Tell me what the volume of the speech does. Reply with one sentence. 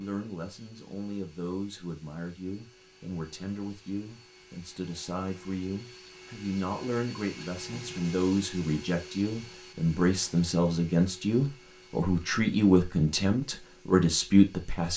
The volume of the speech goes up.